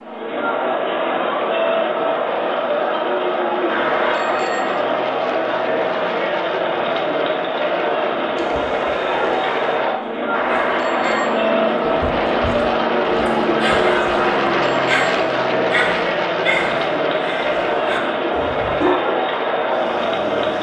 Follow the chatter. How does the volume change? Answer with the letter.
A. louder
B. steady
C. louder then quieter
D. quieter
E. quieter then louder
B.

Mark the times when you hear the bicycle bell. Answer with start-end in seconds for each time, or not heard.
3.6-4.8, 10.3-11.4, 14.2-15.0.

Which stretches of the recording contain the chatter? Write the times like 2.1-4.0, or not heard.
0.0-20.5.